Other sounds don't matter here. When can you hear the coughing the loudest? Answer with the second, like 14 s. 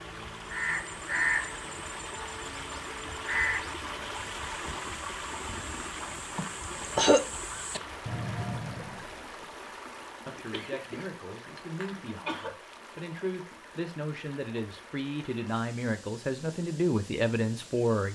7 s.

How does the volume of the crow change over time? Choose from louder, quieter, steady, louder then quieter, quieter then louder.
quieter then louder.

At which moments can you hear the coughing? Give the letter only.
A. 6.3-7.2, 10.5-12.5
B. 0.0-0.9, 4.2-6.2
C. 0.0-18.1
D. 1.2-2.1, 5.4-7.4
A.